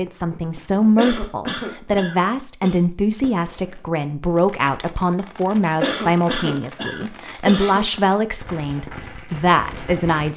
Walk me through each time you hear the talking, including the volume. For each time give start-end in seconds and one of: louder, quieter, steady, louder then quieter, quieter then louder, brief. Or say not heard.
0.0-10.3 steady.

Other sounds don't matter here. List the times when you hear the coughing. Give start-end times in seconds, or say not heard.
0.9-2.8, 5.8-8.1.